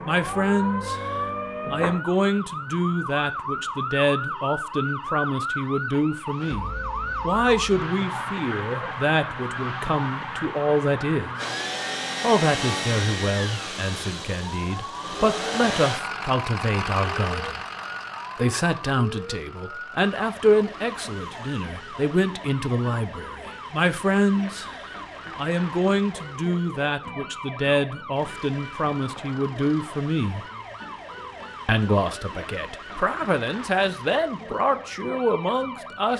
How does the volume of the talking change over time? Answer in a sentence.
The loudness of the talking stays about the same.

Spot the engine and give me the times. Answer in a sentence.
You can hear the engine from 11.3 to 21.6 s.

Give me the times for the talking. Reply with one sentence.
You can hear the talking from 0.1 to 11.3 s, from 12.2 to 17.6 s, from 18.4 to 30.4 s and from 31.6 to 36.1 s.